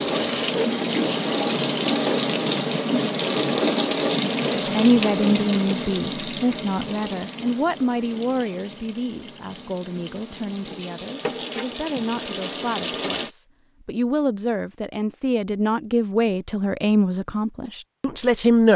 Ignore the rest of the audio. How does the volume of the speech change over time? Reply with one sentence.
The loudness of the speech goes down, then up.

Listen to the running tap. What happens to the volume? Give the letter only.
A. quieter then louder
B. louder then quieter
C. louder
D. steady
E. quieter
A.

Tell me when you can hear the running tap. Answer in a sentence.
You can hear the running tap from 0.0 to 13.3 s.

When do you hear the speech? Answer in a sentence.
The speech can be heard from 4.7 to 18.7 s.